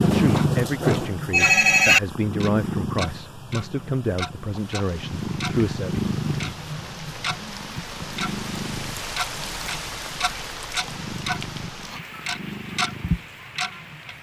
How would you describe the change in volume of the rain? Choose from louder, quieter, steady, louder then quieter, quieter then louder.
louder then quieter.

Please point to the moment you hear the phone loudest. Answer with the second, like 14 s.
2 s.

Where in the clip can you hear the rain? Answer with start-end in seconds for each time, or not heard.
4.7-14.1.